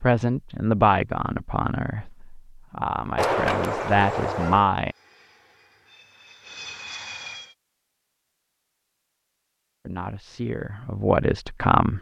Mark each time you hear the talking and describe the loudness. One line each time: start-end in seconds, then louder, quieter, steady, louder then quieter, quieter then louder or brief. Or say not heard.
0.0-5.0 quieter then louder
9.8-11.9 brief.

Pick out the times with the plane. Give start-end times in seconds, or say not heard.
4.8-7.5.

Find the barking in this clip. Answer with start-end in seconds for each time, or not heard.
3.1-4.7.